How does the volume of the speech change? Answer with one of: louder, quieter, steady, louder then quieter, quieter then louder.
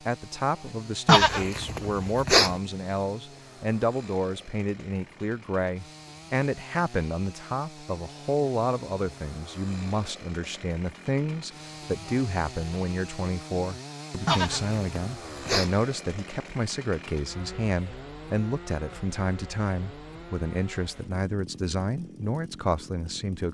steady.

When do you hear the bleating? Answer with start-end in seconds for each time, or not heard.
1.1-2.5, 14.2-15.8.